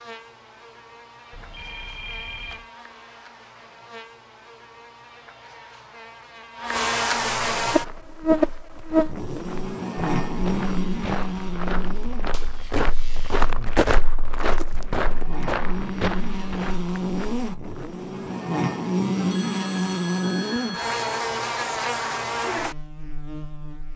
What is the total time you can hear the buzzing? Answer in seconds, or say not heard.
24 s.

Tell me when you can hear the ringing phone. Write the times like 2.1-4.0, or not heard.
1.3-2.6, 19.1-21.2.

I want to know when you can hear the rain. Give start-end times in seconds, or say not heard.
not heard.